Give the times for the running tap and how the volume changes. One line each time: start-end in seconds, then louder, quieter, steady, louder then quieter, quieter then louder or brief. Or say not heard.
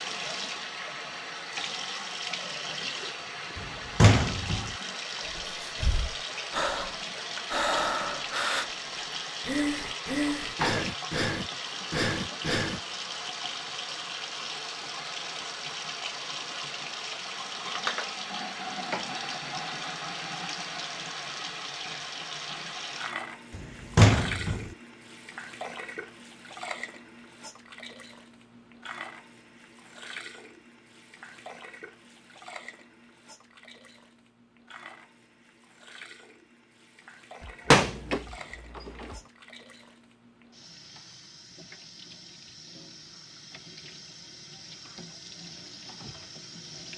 0.0-46.9 quieter.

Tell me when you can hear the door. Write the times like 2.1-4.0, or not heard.
3.5-4.7, 23.6-24.6, 37.4-39.2.